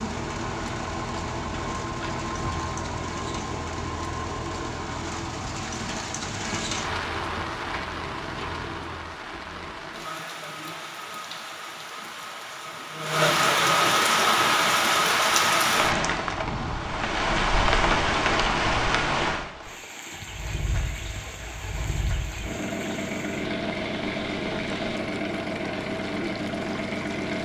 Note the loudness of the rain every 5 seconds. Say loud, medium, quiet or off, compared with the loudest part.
quiet, medium, loud, loud, quiet, quiet.